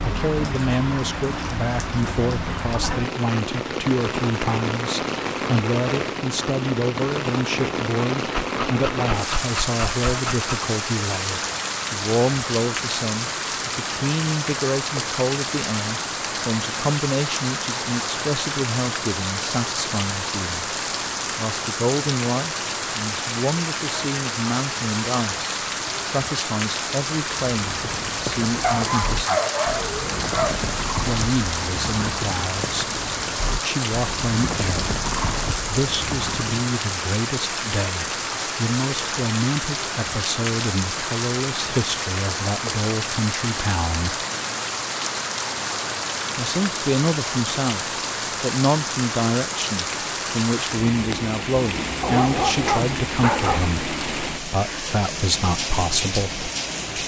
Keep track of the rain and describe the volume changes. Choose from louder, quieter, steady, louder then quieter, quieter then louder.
steady.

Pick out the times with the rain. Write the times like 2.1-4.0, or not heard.
0.0-57.0.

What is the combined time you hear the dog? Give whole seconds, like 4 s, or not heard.
6 s.